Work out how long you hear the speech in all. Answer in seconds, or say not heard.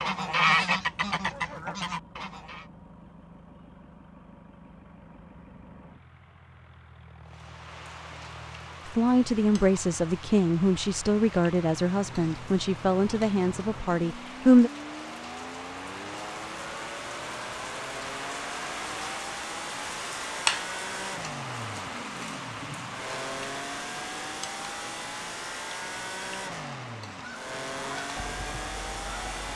6 s.